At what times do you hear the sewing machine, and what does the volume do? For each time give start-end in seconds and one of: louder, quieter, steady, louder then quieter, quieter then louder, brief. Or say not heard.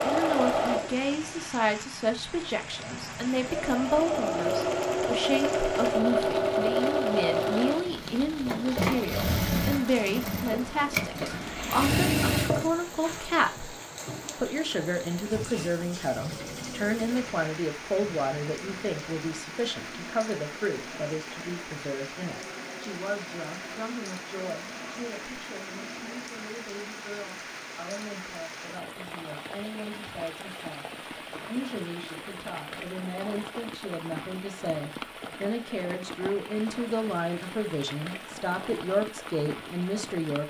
0.0-26.4 quieter.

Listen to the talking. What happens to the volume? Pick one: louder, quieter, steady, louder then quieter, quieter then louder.
quieter then louder.